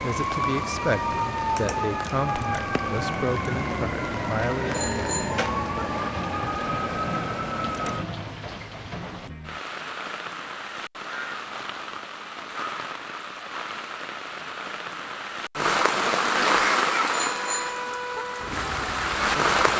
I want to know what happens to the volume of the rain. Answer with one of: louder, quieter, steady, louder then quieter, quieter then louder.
louder.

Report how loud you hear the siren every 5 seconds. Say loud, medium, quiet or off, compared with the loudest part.
loud, loud, off, medium.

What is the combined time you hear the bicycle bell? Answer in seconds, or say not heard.
2 s.